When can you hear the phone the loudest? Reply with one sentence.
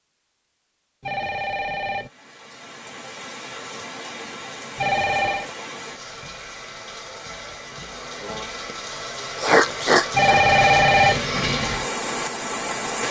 The loudest moment of the phone is at 11 seconds.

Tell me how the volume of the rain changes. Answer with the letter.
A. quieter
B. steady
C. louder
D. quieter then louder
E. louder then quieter
C.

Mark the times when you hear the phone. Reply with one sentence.
The phone can be heard from 1.0 to 2.1 s, from 4.8 to 5.5 s and from 10.1 to 11.2 s.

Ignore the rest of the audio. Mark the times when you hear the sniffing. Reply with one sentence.
The sniffing can be heard from 9.3 to 10.4 s.